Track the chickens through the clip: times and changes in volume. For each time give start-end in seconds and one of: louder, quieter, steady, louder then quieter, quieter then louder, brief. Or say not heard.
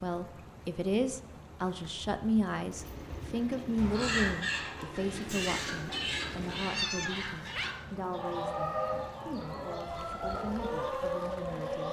3.8-11.8 steady.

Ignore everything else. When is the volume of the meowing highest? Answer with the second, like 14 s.
7 s.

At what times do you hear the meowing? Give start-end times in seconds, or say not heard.
3.8-4.4, 6.3-7.8.